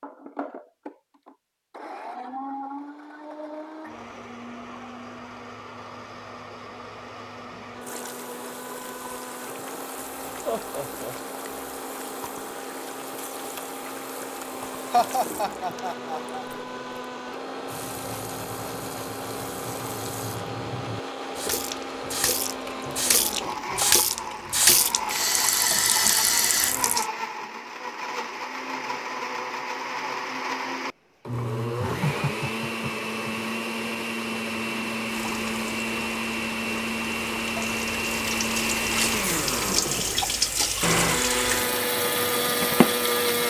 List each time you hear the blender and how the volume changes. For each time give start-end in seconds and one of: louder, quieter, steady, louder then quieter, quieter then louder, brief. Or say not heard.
0.0-43.4 louder.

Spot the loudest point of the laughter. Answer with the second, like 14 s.
15 s.